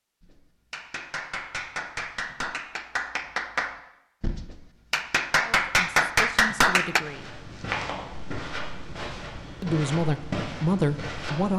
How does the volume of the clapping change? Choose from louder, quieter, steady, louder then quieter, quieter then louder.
louder.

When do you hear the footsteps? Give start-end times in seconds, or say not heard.
7.0-11.5.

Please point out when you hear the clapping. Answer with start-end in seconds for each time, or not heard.
0.2-7.0.